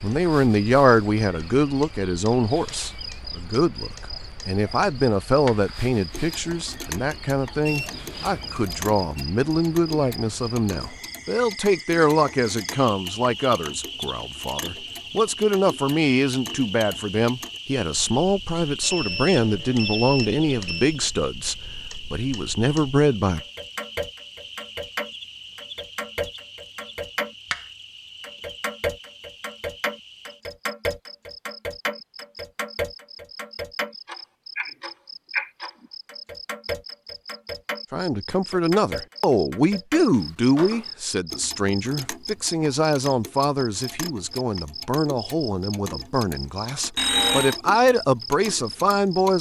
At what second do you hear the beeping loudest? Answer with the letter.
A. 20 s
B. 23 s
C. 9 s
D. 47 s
D.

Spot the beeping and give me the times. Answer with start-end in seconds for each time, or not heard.
7.6-9.0, 18.8-21.0, 47.0-47.5.